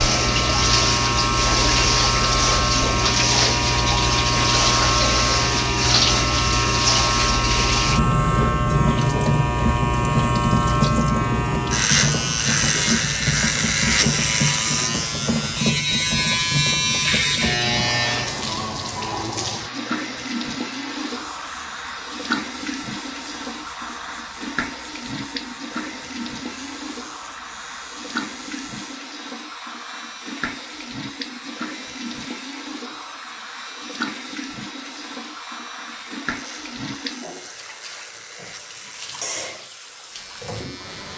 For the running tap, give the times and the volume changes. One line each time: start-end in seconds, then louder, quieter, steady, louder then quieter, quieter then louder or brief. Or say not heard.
0.0-41.1 quieter.